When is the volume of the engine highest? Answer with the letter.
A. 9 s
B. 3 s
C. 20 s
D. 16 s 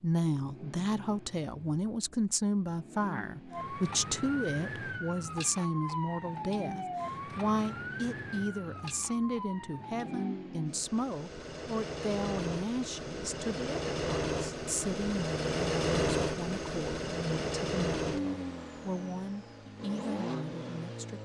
D.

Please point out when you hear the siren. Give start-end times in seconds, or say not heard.
3.5-10.3.